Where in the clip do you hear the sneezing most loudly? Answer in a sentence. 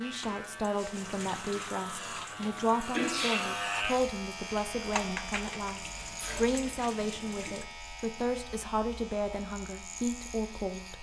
The volume of the sneezing peaks at 3 seconds.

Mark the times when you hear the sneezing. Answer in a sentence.
The sneezing can be heard from 2.4 to 3.5 s and from 6.0 to 6.5 s.